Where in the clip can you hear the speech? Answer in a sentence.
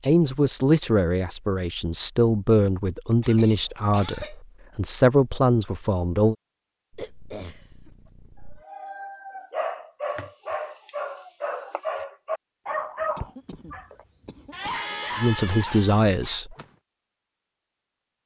The speech can be heard from 0.0 to 6.3 s and from 15.2 to 16.6 s.